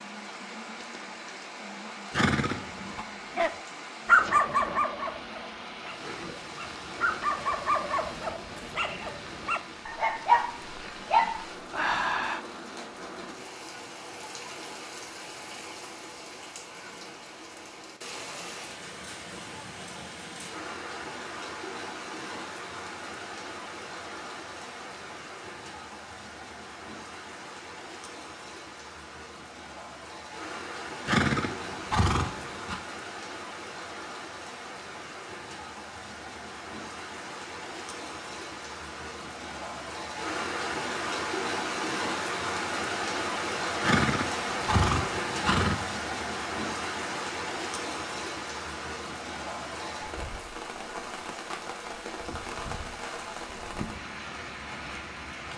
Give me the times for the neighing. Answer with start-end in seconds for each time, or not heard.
2.1-3.0, 31.1-32.8, 43.8-45.9.